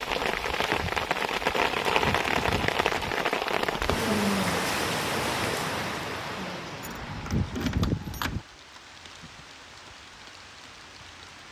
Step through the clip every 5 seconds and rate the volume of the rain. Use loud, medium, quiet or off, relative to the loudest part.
loud, medium, quiet.